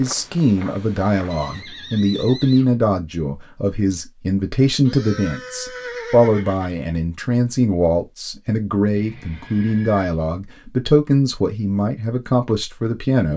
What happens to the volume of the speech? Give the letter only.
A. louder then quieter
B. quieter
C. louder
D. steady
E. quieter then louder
D.